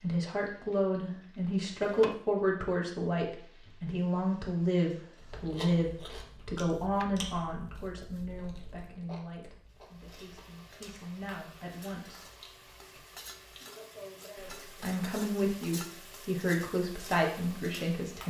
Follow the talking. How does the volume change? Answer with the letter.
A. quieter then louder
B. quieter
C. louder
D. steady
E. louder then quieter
A.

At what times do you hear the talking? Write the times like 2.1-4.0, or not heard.
0.0-12.2, 14.3-18.2.